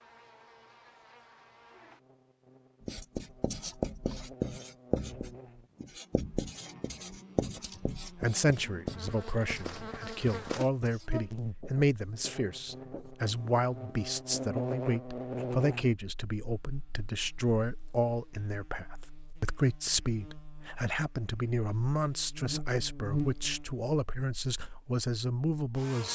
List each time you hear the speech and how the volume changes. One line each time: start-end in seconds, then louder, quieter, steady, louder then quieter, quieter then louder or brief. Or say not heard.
7.5-26.0 steady.